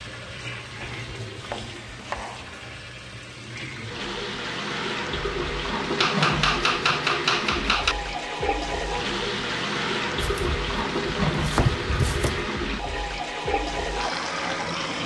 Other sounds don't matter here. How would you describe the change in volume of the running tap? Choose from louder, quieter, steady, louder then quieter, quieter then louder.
louder.